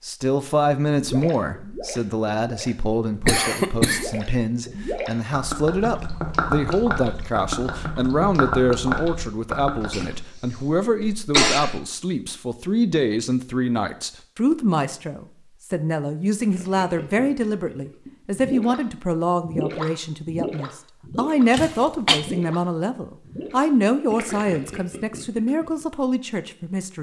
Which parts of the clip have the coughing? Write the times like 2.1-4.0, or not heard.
3.2-4.1, 9.8-11.8, 21.5-22.2.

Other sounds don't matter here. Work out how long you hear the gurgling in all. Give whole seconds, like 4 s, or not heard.
19 s.